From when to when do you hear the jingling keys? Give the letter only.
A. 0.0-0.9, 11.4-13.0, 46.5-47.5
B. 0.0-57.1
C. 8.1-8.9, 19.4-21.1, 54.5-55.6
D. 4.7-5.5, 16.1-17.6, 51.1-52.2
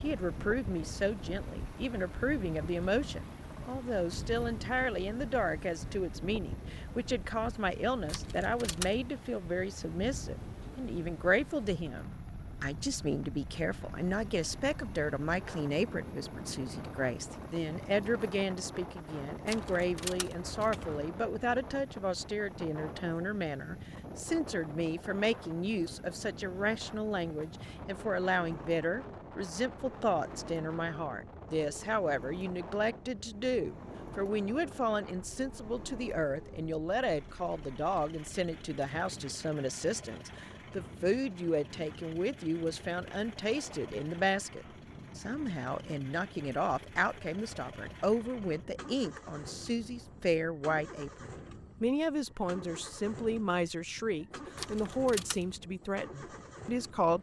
C.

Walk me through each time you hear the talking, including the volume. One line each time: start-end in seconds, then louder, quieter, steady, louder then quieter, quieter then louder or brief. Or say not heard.
0.0-57.1 steady.